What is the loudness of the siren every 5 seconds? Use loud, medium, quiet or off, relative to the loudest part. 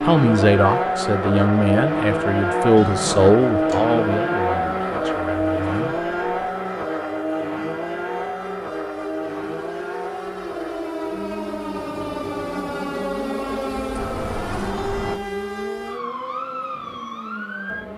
medium, medium, loud, loud.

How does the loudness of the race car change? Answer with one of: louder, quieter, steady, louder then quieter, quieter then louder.
quieter.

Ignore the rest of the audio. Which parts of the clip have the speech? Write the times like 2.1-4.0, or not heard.
0.0-6.0.